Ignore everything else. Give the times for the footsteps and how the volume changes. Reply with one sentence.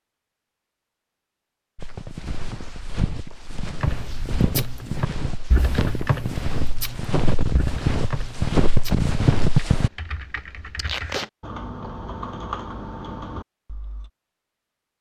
You can hear the footsteps from 1.8 to 9.9 s, getting louder.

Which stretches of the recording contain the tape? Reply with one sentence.
You can hear the tape from 10.8 to 11.3 s.